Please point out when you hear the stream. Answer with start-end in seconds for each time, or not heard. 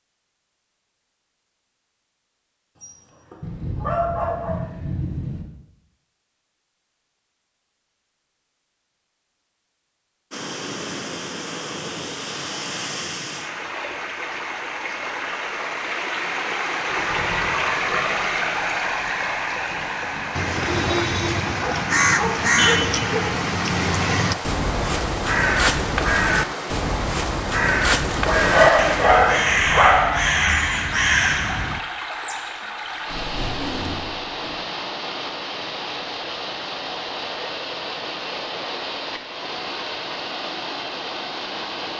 10.3-41.9.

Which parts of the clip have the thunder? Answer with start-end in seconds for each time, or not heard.
3.4-5.5, 16.9-20.4, 33.0-34.6.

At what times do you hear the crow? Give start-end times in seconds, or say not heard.
20.3-31.8.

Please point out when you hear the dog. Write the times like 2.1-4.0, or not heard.
2.8-4.6, 21.6-23.0, 28.2-30.4.